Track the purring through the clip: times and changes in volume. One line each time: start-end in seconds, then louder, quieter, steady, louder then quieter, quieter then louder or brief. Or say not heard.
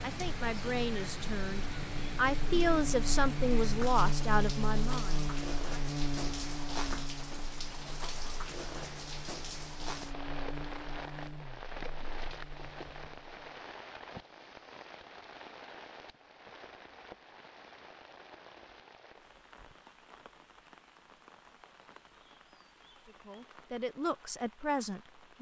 not heard.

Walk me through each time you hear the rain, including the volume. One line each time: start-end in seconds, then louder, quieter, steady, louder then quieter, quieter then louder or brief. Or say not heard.
0.0-25.3 quieter.